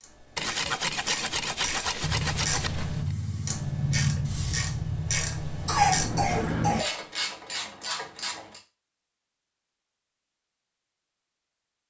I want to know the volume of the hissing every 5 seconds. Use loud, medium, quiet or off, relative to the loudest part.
loud, loud, off.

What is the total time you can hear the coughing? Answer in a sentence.
You can hear the coughing for 2 seconds altogether.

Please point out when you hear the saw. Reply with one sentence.
The saw can be heard from 0.3 to 3.1 s.